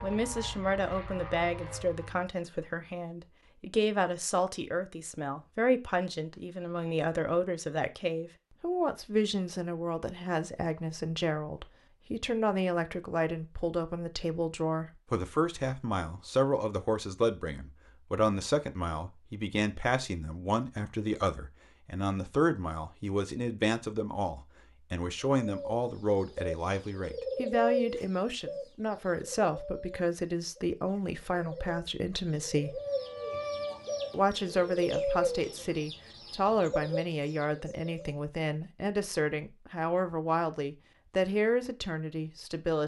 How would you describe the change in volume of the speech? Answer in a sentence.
The loudness of the speech stays about the same.